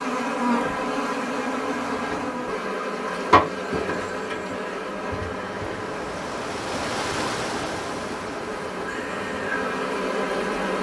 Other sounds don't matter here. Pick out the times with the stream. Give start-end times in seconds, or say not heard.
4.8-10.6.